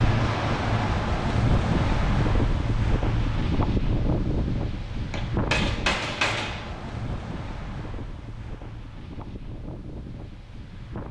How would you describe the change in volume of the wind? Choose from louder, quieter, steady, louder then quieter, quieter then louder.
quieter.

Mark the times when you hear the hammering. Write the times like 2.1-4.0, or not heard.
5.1-6.7.